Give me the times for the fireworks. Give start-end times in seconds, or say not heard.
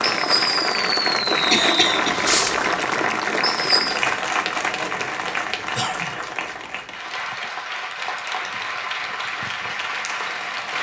0.0-2.7, 3.4-4.0.